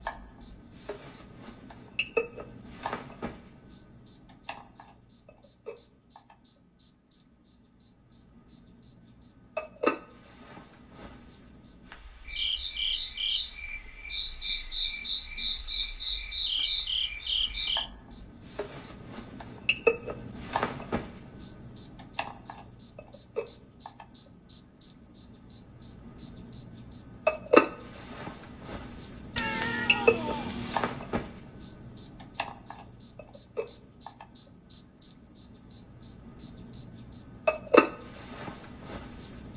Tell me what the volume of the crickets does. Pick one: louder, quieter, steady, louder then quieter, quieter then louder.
louder.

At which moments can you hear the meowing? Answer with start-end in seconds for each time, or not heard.
29.4-30.9.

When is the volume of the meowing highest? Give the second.
30 s.